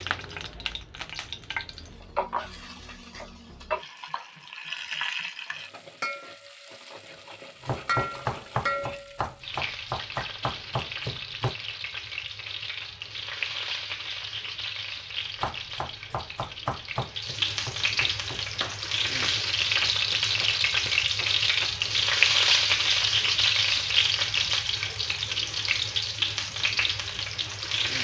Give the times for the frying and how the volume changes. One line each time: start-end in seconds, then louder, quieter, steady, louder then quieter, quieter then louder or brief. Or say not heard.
0.0-27.9 louder.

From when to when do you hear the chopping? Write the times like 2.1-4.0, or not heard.
7.6-11.6, 15.4-21.8.